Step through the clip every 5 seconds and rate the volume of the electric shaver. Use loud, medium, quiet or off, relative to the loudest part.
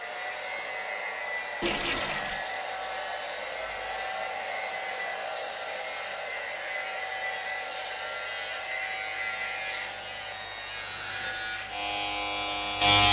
medium, medium, loud.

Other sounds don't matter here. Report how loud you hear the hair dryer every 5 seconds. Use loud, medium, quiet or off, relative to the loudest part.
loud, loud, medium.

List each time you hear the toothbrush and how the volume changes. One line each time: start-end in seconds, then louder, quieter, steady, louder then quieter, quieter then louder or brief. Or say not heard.
not heard.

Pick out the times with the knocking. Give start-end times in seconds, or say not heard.
not heard.